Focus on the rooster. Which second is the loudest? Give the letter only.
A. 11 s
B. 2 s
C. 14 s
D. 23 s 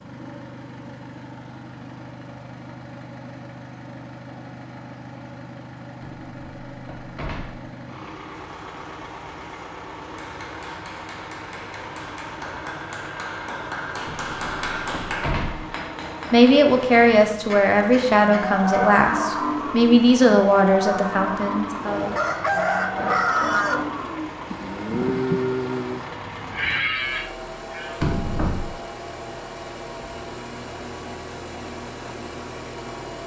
D.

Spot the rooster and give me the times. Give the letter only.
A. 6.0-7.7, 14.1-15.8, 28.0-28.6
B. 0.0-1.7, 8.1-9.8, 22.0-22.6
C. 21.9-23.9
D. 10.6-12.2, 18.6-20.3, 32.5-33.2
C.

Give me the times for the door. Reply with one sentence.
The door can be heard from 6.0 to 7.7 s, from 14.1 to 15.8 s and from 28.0 to 28.6 s.